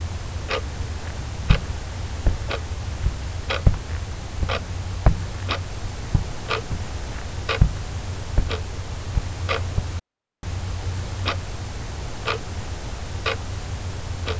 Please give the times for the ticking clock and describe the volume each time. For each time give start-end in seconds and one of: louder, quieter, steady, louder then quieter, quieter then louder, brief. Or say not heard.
0.0-14.3 steady.